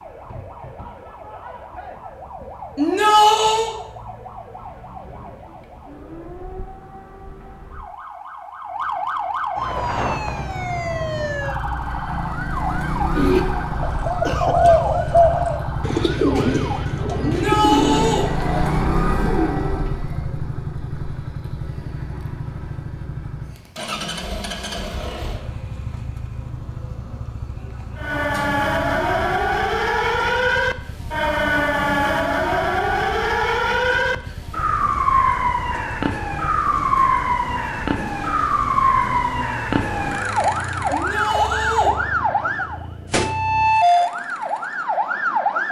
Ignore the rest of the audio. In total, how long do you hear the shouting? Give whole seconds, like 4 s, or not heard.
3 s.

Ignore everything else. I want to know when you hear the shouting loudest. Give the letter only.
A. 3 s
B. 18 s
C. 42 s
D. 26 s
A.